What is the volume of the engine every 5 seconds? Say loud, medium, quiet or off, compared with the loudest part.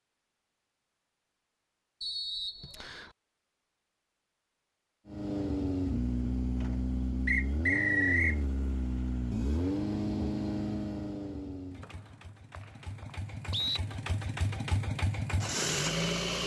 off, loud, medium, loud.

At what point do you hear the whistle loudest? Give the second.
8 s.